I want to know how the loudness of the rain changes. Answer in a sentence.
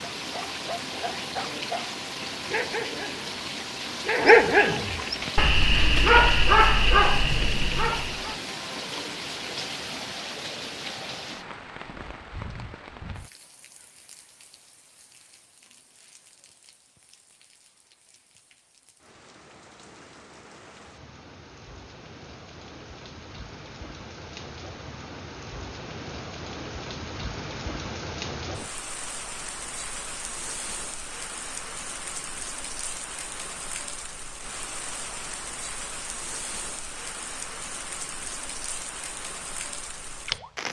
The volume of the rain goes down, then up.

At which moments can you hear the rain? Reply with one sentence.
The rain can be heard from 0.0 to 40.6 s.